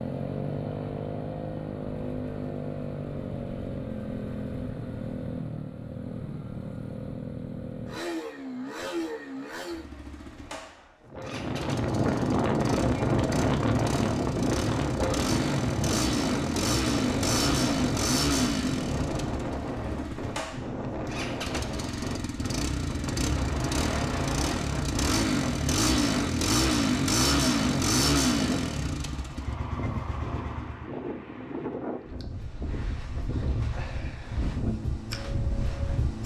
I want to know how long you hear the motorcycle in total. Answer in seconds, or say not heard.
31 s.